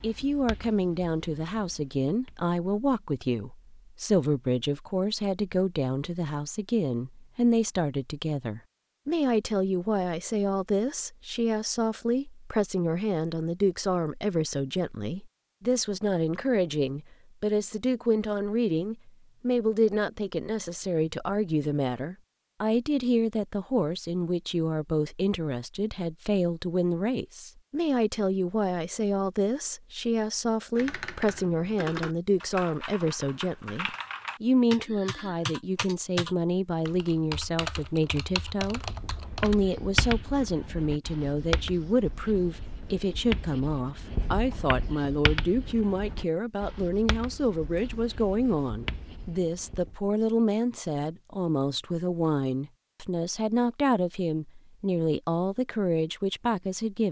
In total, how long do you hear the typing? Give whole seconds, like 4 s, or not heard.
9 s.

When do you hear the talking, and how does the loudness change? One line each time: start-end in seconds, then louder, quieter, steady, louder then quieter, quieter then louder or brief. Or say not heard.
0.0-57.0 steady.